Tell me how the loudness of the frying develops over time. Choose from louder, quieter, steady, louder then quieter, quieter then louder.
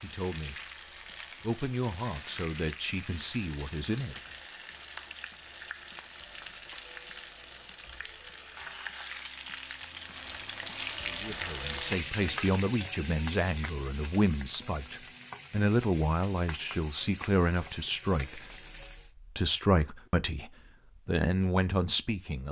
louder then quieter.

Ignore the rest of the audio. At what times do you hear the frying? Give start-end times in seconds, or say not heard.
0.0-19.1.